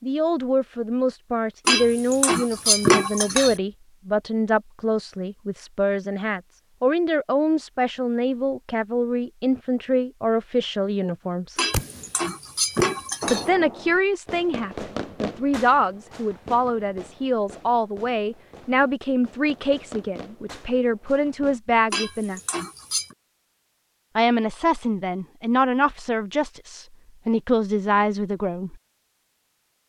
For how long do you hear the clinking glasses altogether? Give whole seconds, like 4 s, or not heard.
5 s.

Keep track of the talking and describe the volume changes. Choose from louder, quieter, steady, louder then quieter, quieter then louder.
steady.